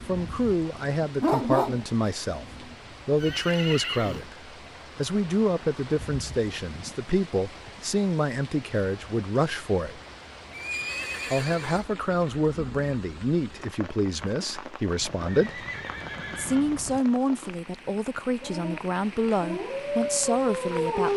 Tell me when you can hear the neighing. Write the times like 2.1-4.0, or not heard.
3.1-4.3, 10.5-11.8, 15.0-17.0.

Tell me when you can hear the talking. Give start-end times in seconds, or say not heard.
0.1-2.5, 3.0-4.3, 5.0-10.0, 11.3-15.7, 16.4-21.1.